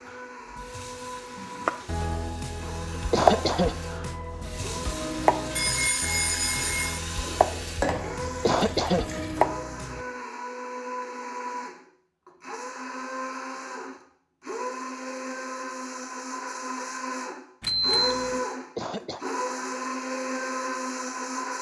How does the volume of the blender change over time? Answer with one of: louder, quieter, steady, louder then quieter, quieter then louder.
louder.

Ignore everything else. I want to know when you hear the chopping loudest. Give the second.
3 s.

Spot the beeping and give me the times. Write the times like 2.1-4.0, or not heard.
5.5-7.0, 17.6-18.4.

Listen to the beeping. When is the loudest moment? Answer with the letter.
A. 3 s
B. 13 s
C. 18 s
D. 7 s
C.